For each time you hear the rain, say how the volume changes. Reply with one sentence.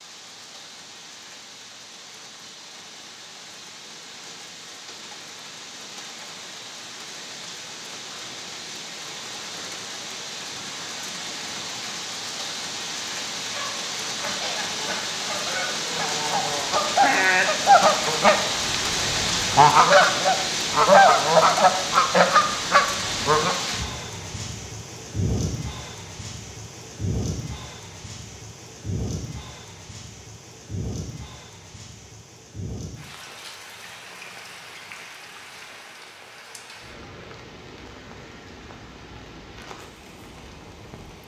You can hear the rain from 0.0 to 41.2 s, getting louder then quieter.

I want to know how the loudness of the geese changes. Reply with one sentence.
The loudness of the geese goes up.